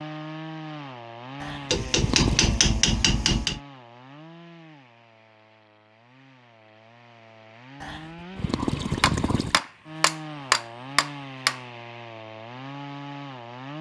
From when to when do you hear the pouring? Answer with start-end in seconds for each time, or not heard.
1.4-2.6, 7.8-9.6.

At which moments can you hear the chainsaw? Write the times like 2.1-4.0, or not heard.
0.0-13.7.